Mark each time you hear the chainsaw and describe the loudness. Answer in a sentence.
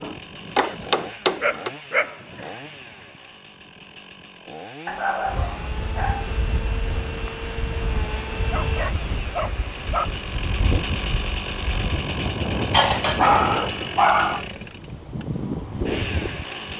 The chainsaw can be heard from 0.0 to 16.7 s, getting louder.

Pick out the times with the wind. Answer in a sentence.
You can hear the wind from 5.2 to 16.7 s.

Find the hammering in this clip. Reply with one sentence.
The hammering can be heard from 0.0 to 1.7 s.